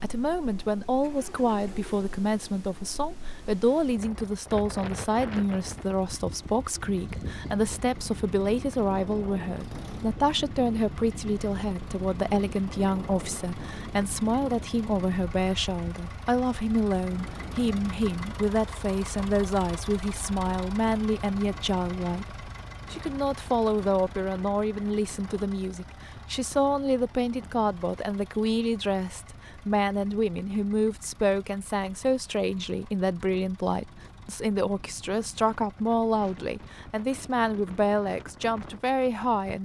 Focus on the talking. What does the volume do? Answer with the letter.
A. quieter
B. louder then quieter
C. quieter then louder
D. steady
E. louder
D.